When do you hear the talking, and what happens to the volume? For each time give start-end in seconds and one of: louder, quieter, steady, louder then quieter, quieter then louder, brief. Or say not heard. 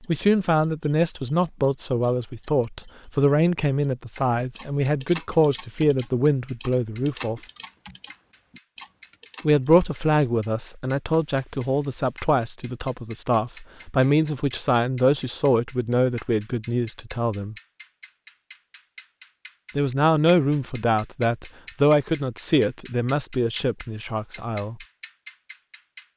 0.1-7.4 steady
9.4-17.6 steady
19.8-24.8 quieter.